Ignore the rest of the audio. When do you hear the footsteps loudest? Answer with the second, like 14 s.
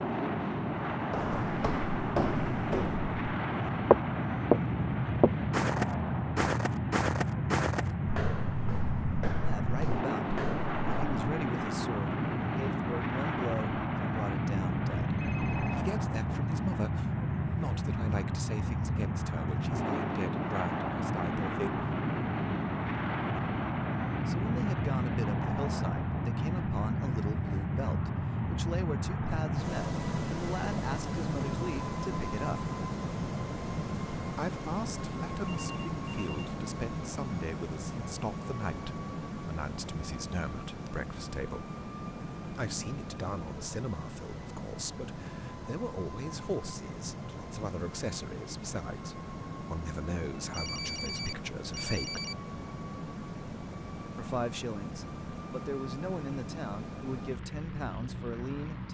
4 s.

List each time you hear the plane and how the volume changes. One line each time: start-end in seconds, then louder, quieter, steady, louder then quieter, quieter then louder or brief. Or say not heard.
0.0-58.9 quieter.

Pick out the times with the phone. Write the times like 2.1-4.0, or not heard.
15.2-15.8, 35.5-36.5, 50.4-52.4.